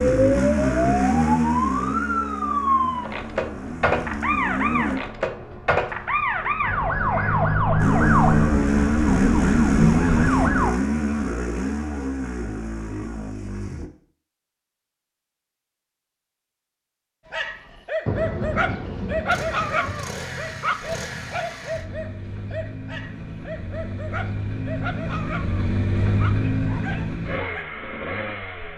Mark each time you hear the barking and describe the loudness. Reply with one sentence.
You can hear the barking from 17.3 to 27.6 s, getting quieter.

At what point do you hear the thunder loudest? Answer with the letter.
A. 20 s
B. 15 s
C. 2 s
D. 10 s
D.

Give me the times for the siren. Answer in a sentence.
You can hear the siren from 0.2 to 10.7 s.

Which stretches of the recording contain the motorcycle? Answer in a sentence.
You can hear the motorcycle from 0.0 to 5.0 s, from 7.8 to 13.9 s and from 19.3 to 28.7 s.